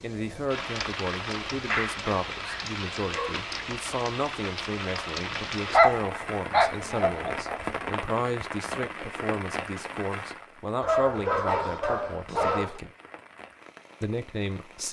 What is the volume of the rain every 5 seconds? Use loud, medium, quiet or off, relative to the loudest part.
loud, loud, medium.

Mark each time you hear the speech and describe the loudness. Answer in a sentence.
The speech can be heard from 0.0 to 12.9 s, at a steady volume; and briefly from 14.0 to 14.8 s.